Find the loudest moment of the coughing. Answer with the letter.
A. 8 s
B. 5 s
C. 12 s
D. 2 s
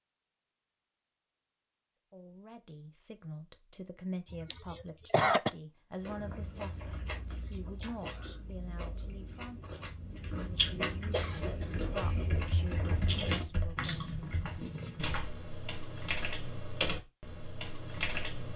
B.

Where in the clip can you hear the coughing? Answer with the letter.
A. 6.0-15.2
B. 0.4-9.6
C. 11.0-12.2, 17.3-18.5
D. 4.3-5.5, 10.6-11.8
D.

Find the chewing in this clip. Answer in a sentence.
The chewing can be heard from 6.0 to 15.2 s.